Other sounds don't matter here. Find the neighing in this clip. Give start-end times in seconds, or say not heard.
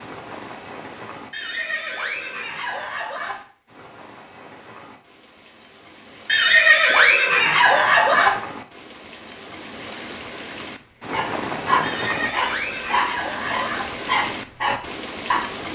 1.3-3.4, 6.2-8.3, 11.8-13.8.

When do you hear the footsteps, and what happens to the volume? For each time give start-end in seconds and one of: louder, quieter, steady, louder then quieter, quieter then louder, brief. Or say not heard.
not heard.